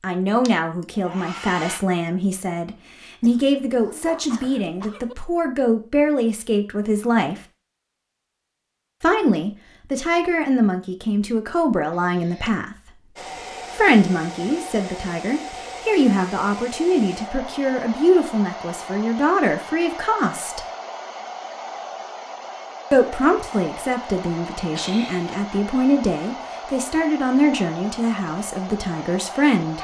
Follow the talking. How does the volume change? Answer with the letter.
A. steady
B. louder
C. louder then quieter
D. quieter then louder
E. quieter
A.